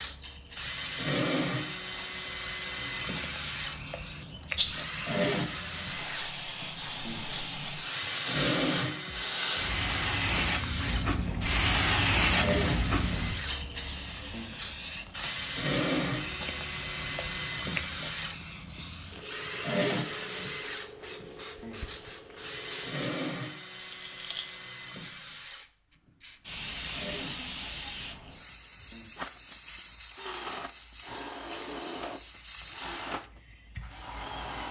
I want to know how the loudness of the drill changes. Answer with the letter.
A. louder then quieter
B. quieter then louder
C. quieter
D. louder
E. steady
C.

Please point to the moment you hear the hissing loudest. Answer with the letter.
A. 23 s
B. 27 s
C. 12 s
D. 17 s
C.